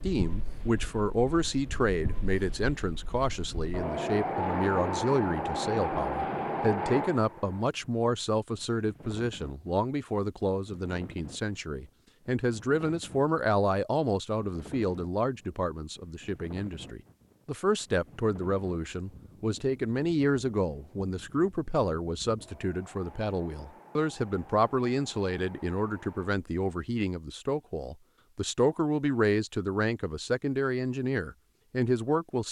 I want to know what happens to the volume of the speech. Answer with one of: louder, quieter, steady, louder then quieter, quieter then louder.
steady.